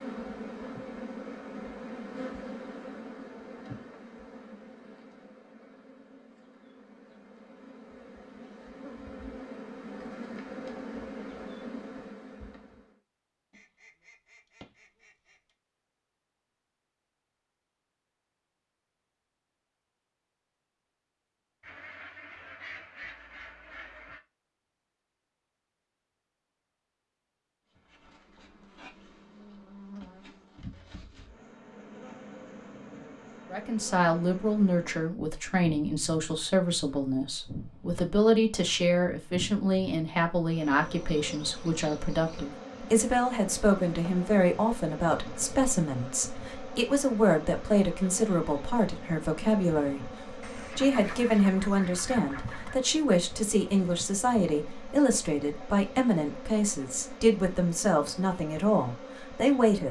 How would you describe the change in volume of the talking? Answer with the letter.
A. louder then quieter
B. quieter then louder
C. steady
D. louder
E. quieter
C.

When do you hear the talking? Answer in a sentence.
The talking can be heard from 33.5 to 59.8 s.